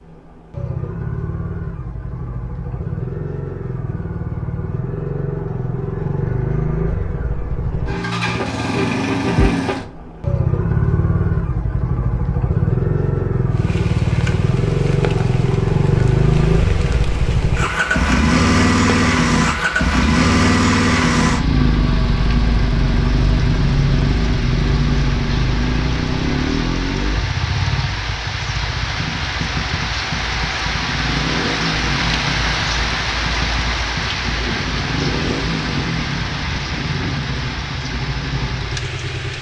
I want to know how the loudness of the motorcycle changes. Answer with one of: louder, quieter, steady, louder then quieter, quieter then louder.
louder then quieter.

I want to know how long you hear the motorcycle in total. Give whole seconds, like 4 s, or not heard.
39 s.